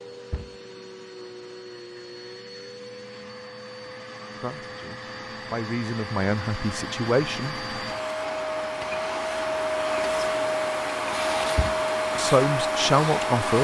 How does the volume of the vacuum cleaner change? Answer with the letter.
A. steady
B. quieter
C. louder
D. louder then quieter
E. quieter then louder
C.